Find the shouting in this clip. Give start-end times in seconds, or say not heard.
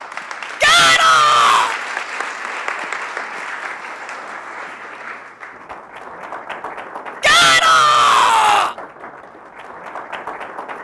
0.6-1.8, 7.2-8.8.